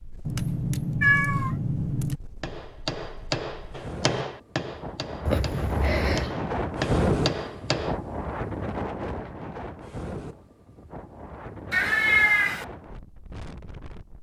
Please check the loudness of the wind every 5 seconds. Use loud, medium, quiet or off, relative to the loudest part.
quiet, loud, medium.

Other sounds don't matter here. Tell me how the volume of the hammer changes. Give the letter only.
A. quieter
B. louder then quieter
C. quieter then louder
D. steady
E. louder
C.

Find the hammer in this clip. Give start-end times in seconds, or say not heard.
2.4-8.0.